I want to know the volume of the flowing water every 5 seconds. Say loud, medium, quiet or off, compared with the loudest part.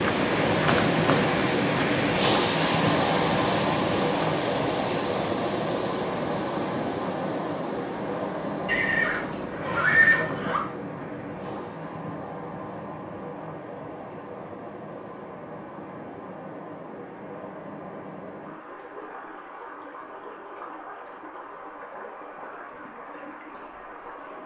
loud, medium, quiet, quiet, quiet.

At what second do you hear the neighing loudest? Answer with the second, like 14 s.
10 s.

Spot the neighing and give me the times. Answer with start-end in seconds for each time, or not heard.
8.7-10.6.